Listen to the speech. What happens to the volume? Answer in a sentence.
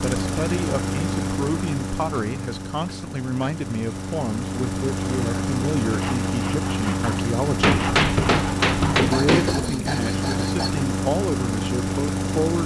The volume of the speech stays about the same.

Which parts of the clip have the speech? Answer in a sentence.
You can hear the speech from 0.0 to 7.7 s and from 8.9 to 12.6 s.